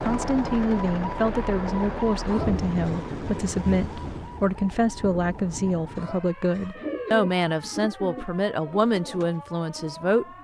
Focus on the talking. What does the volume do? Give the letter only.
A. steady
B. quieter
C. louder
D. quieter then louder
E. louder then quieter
A.